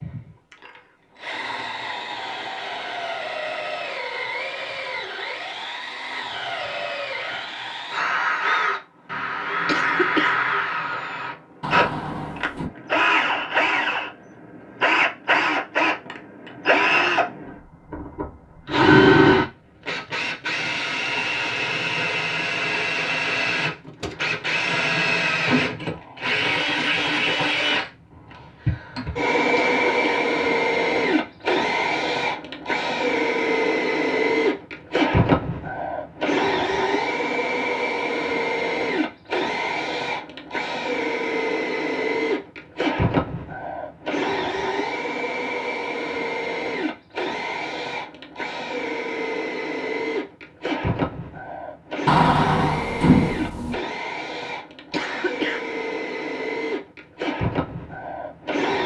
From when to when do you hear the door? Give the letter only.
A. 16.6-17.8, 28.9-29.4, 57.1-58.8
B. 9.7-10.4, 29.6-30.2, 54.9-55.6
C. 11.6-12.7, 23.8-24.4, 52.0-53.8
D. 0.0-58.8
C.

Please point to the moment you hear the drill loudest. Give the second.
19 s.